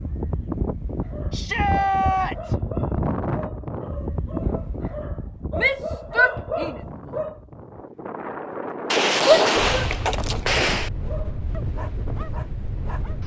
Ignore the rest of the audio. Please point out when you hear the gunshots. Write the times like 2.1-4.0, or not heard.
8.8-10.9.